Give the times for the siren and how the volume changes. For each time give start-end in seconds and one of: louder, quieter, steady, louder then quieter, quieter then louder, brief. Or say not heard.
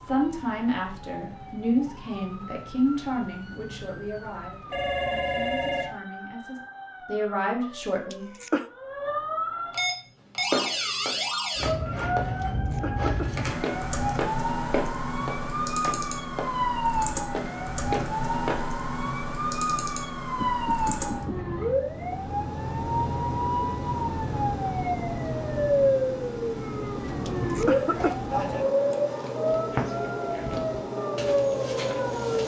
0.0-32.4 louder.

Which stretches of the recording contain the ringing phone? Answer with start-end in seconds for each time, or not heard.
4.7-5.9, 20.4-21.4.